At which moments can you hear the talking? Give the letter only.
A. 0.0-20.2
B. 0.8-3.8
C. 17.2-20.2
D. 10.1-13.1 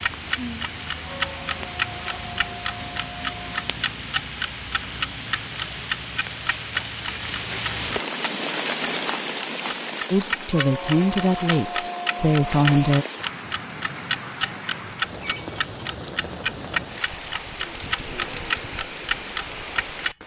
D.